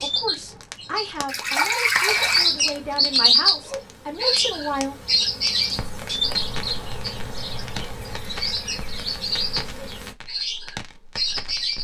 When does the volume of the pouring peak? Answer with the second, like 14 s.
2 s.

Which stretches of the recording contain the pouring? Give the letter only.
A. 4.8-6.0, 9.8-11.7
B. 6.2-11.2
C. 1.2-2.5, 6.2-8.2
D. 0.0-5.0
C.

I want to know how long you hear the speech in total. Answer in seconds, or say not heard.
5 s.